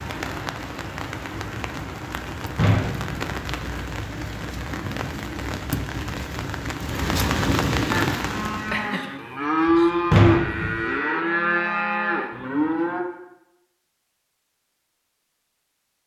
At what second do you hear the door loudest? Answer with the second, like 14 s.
10 s.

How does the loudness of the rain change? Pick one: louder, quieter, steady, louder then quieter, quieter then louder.
louder.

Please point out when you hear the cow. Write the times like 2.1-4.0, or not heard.
7.9-13.1.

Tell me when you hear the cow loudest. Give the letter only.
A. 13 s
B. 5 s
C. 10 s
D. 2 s
C.